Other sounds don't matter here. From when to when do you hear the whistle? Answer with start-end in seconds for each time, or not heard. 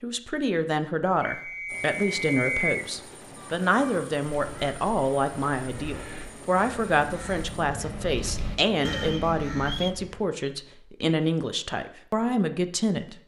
1.2-2.8, 8.9-9.9.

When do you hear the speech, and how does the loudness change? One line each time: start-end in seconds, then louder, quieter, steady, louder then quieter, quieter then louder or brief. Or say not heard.
0.0-13.2 steady.